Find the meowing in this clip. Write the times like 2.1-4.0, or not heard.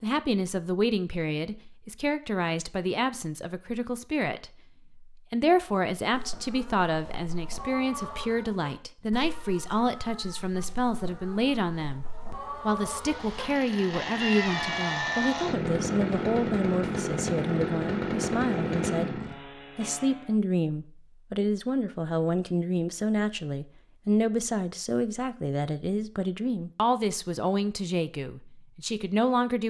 14.2-15.2.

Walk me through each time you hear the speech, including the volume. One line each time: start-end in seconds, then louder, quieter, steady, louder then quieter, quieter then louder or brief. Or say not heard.
0.0-29.6 steady.